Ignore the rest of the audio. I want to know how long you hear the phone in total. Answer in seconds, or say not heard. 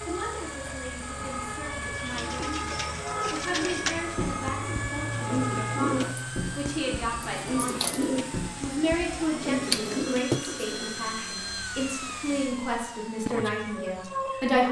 2 s.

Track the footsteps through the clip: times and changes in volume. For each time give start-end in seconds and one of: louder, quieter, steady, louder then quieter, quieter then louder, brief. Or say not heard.
not heard.